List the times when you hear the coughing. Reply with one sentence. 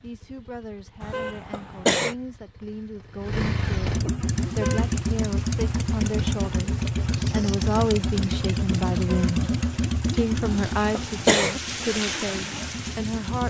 You can hear the coughing from 1.0 to 2.1 s and from 10.4 to 11.6 s.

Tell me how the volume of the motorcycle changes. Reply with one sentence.
The volume of the motorcycle goes up, then down.